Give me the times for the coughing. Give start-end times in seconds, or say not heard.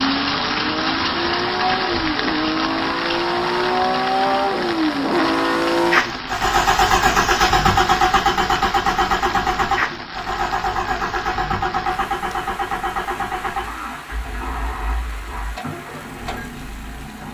not heard.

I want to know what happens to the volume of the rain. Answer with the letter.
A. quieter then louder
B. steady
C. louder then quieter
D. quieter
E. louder
D.